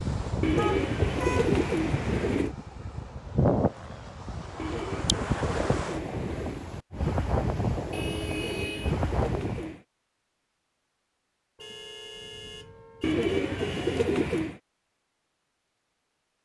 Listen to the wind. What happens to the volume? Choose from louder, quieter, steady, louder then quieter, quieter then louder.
steady.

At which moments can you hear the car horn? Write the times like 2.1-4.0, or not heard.
0.6-1.6, 7.9-8.9, 11.6-14.1.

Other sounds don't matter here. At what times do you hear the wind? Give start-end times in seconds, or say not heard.
0.0-9.7.